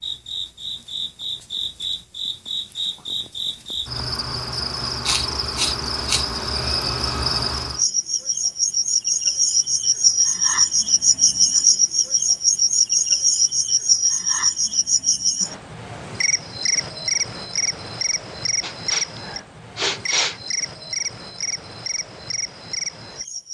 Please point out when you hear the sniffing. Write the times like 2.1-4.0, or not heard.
5.0-6.2, 18.6-20.4.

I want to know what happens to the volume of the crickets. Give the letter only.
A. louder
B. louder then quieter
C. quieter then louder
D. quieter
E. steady
B.